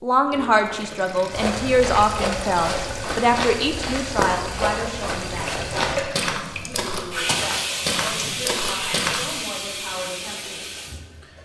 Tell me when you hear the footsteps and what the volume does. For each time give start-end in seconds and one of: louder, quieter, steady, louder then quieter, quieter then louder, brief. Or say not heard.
1.3-9.4 steady.